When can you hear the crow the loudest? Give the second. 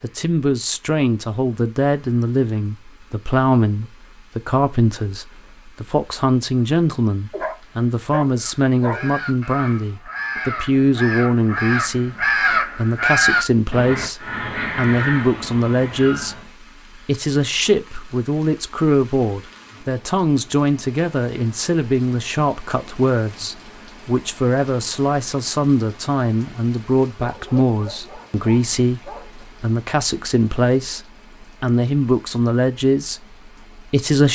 13 s.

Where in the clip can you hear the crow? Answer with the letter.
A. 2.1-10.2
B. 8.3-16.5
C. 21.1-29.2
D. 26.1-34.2
B.